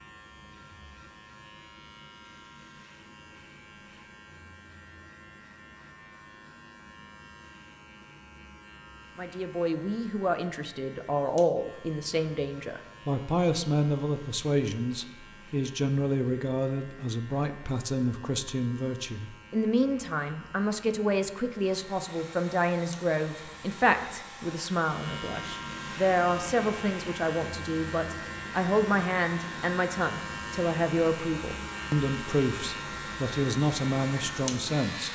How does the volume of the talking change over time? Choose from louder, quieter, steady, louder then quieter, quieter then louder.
steady.